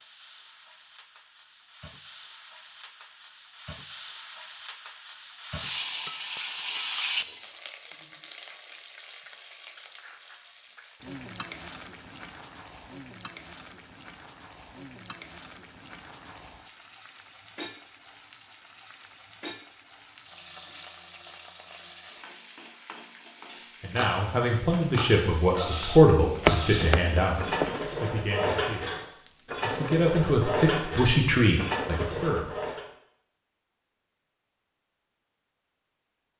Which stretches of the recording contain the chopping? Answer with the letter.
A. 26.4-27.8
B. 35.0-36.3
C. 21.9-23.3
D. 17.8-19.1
A.